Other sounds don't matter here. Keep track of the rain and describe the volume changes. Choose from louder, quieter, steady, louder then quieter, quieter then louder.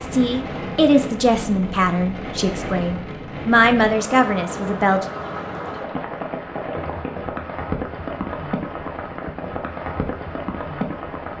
steady.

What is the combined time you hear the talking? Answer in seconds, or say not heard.
5 s.